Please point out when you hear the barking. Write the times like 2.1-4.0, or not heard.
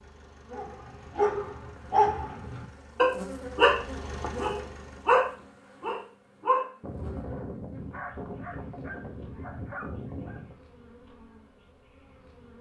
0.6-10.5.